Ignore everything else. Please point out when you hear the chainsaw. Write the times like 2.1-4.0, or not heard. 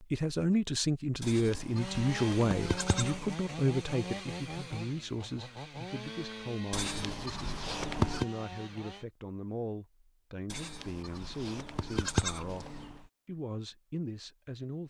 1.7-9.1.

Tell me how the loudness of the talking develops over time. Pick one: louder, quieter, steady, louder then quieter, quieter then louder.
quieter.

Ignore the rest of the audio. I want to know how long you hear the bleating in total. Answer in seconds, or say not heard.
6 s.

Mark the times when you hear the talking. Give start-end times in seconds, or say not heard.
0.0-14.8.